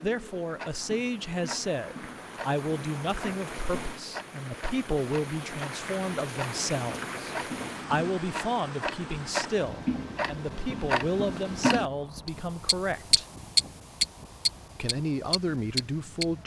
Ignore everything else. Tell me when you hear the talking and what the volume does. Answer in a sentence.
The talking can be heard from 0.0 to 13.2 s, at a steady volume; and briefly from 14.8 to 16.4 s.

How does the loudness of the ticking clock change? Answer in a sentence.
The volume of the ticking clock goes up.